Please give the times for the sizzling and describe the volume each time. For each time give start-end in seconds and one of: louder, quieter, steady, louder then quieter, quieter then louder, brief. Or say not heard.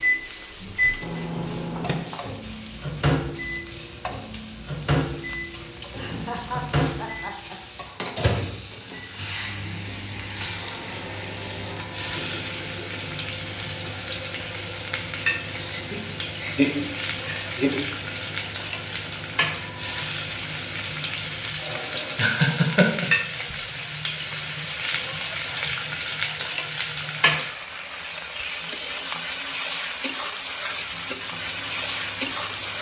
0.0-32.7 louder.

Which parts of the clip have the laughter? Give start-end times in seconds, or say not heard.
6.0-7.5, 15.6-17.8, 22.1-23.6.